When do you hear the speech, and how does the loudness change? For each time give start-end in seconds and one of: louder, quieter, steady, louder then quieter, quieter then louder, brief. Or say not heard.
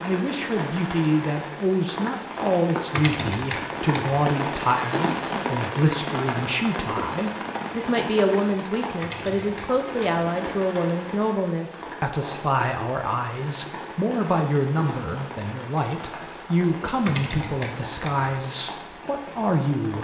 0.0-19.9 steady.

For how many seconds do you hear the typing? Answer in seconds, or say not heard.
4 s.